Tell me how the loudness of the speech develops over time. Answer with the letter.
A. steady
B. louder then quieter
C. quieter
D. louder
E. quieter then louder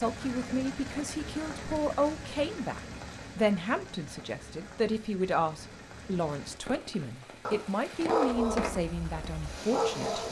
A.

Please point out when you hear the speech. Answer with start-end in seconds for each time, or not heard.
0.0-10.2.